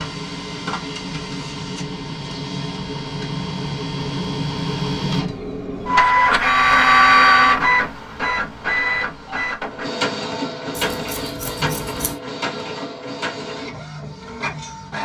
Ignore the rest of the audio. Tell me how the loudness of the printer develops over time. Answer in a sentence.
The loudness of the printer goes up, then down.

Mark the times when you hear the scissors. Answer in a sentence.
The scissors can be heard from 10.8 to 12.2 s.